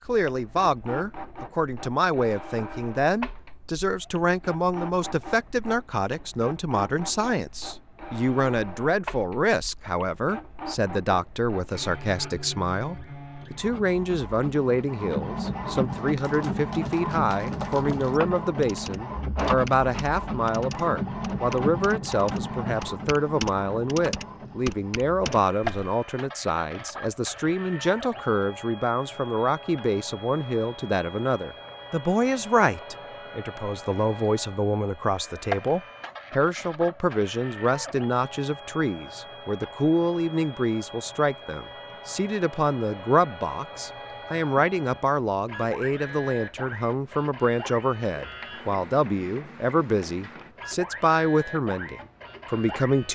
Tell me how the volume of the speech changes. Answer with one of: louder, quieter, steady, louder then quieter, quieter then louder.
steady.